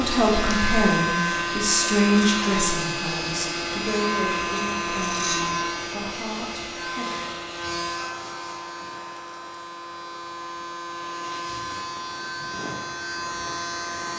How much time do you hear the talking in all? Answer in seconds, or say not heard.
7 s.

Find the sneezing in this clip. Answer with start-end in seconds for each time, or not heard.
not heard.